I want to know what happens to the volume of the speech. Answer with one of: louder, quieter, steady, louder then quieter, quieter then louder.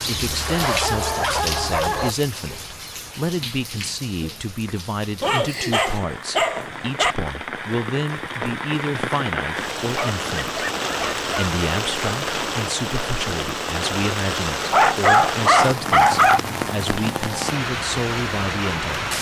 steady.